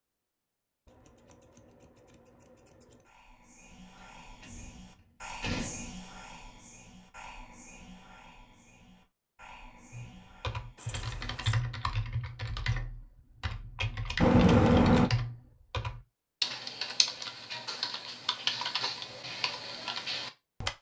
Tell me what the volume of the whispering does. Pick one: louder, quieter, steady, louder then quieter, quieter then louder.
louder then quieter.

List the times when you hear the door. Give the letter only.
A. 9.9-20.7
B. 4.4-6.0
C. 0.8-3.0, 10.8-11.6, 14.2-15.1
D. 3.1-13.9
B.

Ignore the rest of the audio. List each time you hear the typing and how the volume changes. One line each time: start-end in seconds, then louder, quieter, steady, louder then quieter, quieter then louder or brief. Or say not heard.
9.9-20.7 steady.